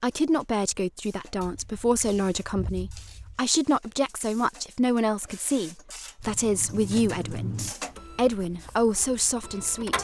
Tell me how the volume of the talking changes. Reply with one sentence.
The loudness of the talking stays about the same.